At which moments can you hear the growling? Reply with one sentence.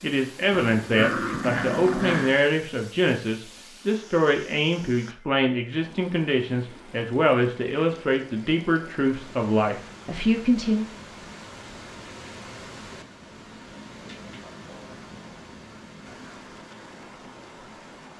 You can hear the growling from 0.5 to 2.4 s and from 14.0 to 15.4 s.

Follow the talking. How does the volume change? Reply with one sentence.
The volume of the talking stays about the same.